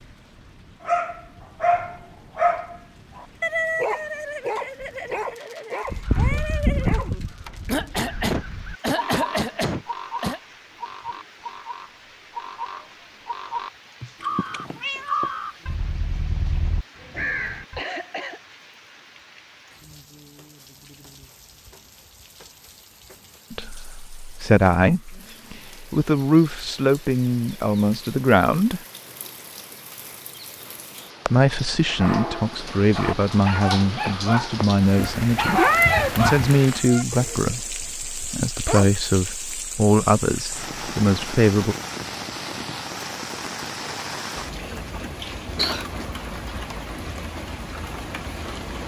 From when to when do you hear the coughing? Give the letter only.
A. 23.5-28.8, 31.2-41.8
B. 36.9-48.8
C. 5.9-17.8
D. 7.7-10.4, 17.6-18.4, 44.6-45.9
D.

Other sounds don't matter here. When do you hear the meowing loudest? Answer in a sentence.
The volume of the meowing peaks at 36 seconds.